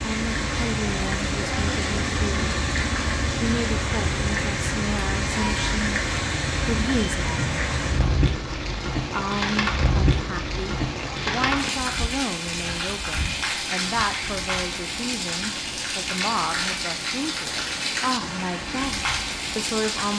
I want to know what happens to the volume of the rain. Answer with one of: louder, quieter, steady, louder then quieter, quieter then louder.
steady.